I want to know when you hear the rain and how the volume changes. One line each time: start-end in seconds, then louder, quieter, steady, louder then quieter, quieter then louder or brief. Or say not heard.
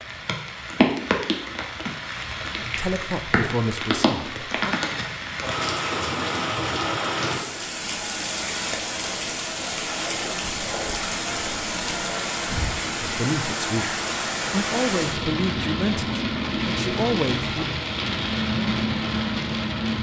0.0-19.9 steady.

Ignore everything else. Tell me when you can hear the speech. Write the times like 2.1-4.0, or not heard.
2.5-4.8, 13.0-17.6.